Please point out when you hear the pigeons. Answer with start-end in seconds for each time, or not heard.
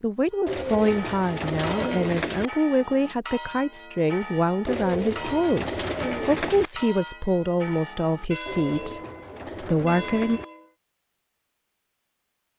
0.5-2.5, 4.7-6.7, 8.4-10.4.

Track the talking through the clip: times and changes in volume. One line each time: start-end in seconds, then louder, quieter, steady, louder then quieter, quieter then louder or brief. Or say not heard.
0.0-9.0 steady
9.6-10.4 brief.